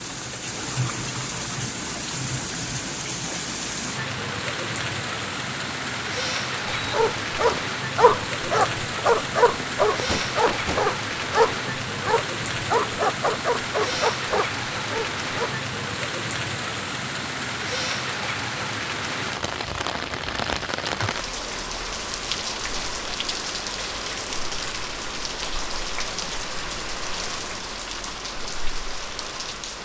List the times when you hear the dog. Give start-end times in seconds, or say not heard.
6.7-15.6.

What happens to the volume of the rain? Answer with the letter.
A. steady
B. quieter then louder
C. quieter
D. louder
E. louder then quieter
A.